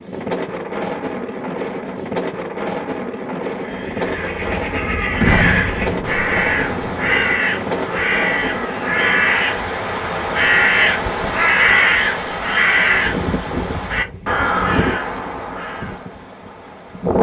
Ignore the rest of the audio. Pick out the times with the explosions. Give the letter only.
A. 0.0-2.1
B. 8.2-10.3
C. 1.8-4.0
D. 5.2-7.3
D.